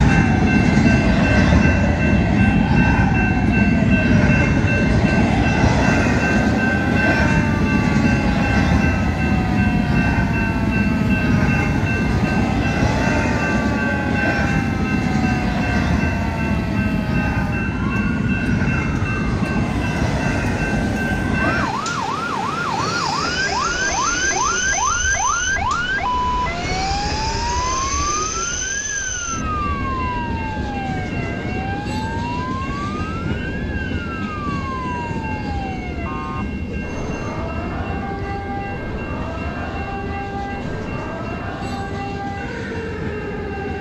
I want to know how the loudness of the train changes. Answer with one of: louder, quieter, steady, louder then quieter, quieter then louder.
quieter.